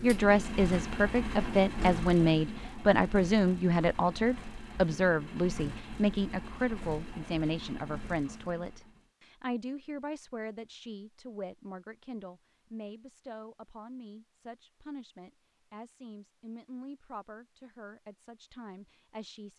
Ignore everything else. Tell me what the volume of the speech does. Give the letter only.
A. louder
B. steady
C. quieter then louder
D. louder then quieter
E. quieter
E.